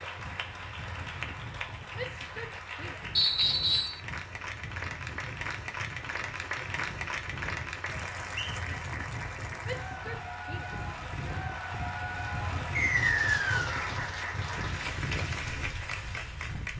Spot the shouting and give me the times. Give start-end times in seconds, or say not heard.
1.9-3.0, 9.6-10.8.